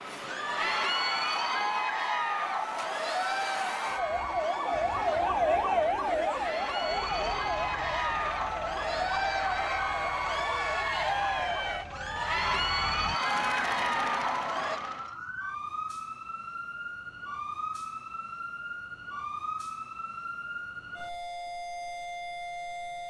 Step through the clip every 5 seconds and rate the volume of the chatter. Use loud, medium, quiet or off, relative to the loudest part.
loud, loud, loud, off, off.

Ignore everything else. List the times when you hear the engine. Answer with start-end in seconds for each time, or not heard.
6.8-15.2.